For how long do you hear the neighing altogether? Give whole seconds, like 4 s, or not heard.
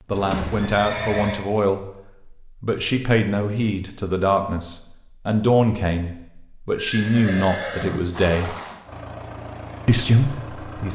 3 s.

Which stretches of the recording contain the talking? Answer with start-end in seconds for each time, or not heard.
0.1-1.8, 2.6-8.6, 9.8-10.9.